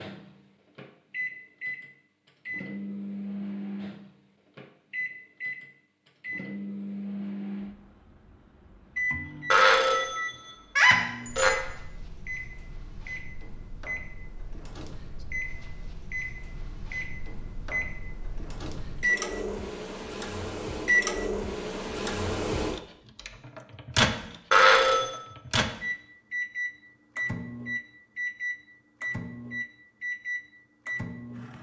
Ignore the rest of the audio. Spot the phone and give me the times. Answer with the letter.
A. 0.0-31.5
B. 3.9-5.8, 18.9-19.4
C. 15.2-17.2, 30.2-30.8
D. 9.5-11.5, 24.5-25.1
D.